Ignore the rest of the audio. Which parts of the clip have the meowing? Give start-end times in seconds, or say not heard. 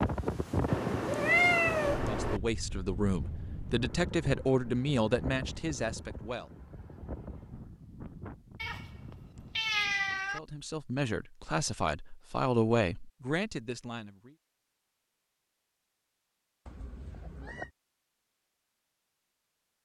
0.7-2.4, 8.6-10.4, 16.6-17.7.